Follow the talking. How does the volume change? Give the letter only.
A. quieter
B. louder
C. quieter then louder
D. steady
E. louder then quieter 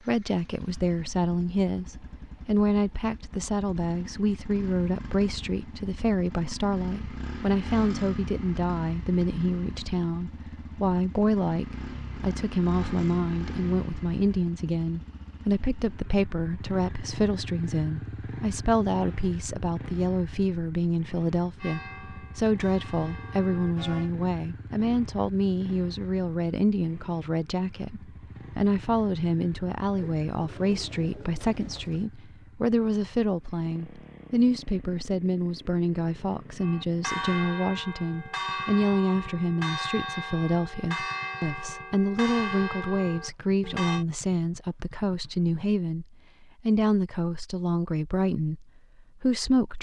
D.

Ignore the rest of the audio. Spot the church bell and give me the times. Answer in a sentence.
The church bell can be heard from 21.6 to 24.1 s and from 36.6 to 44.0 s.